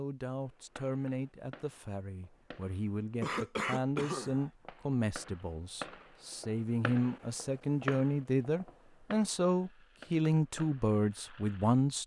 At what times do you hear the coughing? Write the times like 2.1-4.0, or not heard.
3.2-4.5.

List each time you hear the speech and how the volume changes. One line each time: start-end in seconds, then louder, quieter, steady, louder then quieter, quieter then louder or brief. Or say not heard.
0.0-12.0 louder.